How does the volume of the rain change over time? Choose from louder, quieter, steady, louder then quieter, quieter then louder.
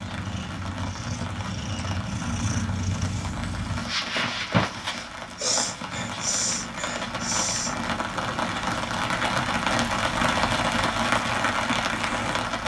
louder.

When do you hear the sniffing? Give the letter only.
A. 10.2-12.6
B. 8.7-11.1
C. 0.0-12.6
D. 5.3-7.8
D.